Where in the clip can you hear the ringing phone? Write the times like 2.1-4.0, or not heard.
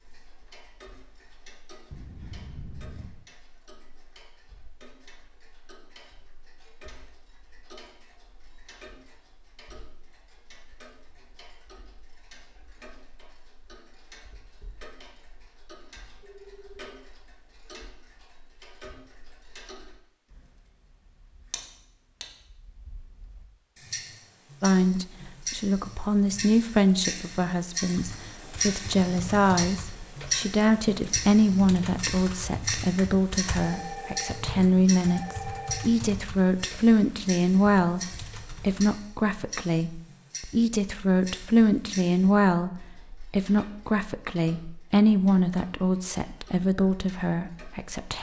1.9-3.1, 16.2-16.9, 33.6-35.9.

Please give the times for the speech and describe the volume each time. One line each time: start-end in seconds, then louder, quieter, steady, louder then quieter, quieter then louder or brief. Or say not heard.
24.6-48.1 steady.